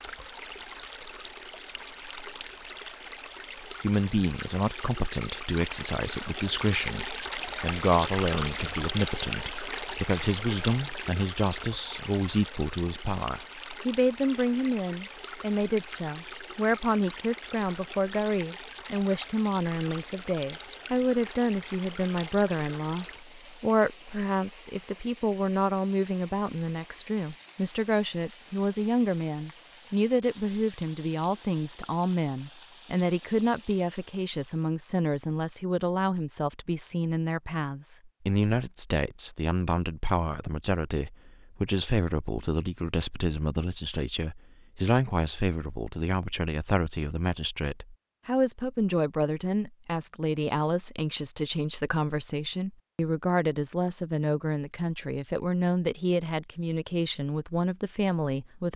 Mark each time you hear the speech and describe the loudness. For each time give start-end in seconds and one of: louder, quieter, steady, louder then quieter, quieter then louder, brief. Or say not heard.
3.6-58.7 steady.